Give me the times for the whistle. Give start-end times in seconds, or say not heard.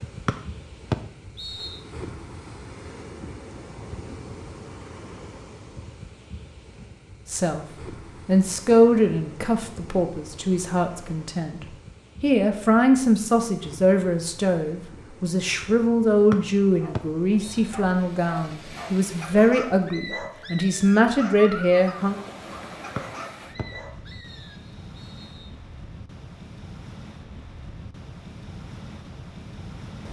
0.2-1.8, 16.3-17.7, 22.9-25.5.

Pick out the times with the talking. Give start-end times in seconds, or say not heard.
7.2-7.7, 8.2-22.1.